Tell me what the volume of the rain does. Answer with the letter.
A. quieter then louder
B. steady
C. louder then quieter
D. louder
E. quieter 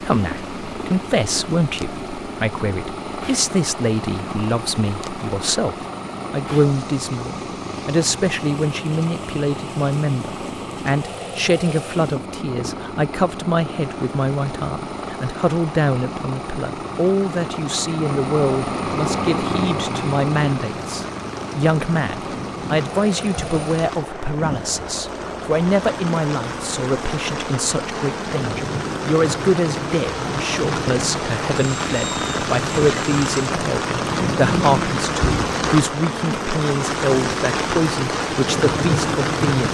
D.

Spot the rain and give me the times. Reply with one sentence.
You can hear the rain from 0.0 to 39.6 s.